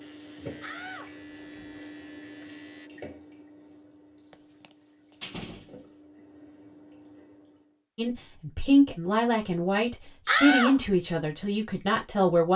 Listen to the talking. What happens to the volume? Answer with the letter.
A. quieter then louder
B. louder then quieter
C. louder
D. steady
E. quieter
E.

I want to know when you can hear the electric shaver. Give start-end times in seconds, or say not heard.
0.0-2.9.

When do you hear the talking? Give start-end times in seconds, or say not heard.
8.0-12.5.